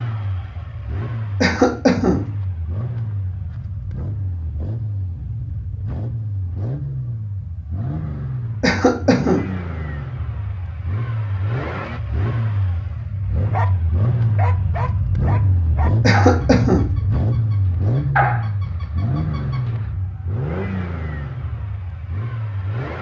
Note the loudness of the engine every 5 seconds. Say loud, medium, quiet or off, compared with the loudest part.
medium, medium, loud, loud, medium.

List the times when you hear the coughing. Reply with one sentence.
You can hear the coughing from 1.4 to 2.2 s, from 8.6 to 9.4 s and from 16.0 to 16.9 s.